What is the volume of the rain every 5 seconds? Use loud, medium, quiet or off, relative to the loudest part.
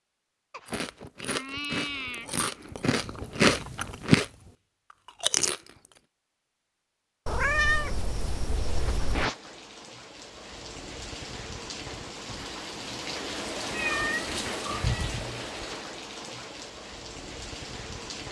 off, loud, loud, loud.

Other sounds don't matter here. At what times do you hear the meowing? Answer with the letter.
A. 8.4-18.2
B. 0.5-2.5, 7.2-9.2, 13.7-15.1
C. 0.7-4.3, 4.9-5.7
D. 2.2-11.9
B.